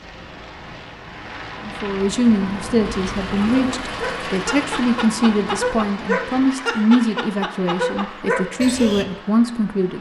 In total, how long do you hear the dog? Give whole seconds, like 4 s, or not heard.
6 s.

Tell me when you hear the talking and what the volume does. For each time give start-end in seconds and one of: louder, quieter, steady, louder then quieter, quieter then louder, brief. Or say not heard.
1.6-9.9 steady.